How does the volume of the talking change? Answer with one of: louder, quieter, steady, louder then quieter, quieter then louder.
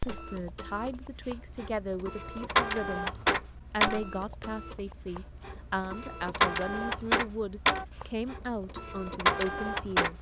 steady.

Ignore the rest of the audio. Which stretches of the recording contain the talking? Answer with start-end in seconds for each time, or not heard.
0.0-3.1, 3.7-10.1.